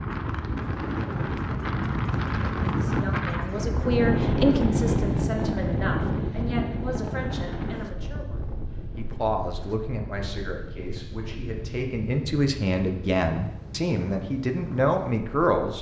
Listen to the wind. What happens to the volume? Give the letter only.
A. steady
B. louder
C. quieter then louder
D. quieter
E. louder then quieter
D.